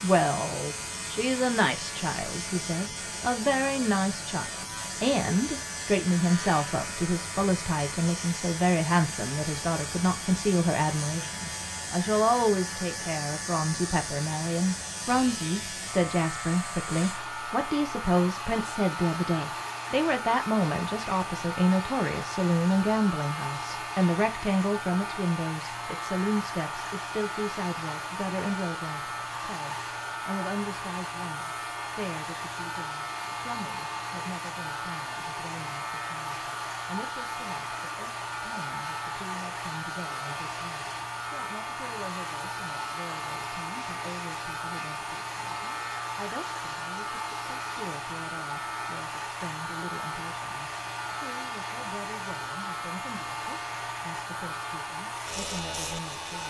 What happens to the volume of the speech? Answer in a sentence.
The volume of the speech goes down.